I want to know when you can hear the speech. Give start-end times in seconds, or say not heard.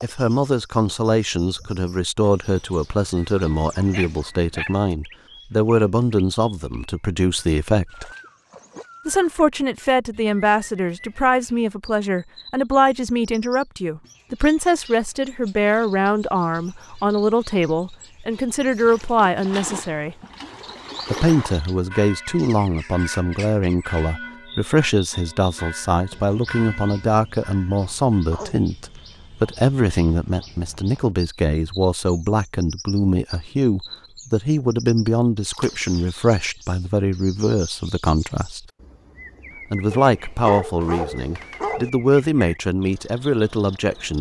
0.0-8.1, 9.1-20.1, 21.1-38.6, 39.7-44.1.